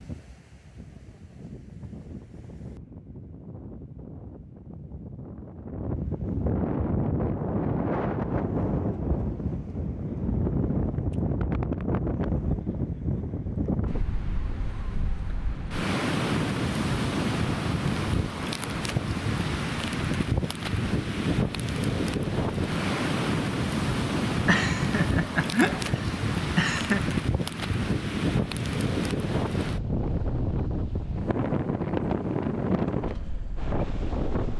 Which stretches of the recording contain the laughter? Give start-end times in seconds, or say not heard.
24.4-27.0.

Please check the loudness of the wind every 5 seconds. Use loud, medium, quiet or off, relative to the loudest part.
quiet, loud, loud, loud, loud, loud, loud.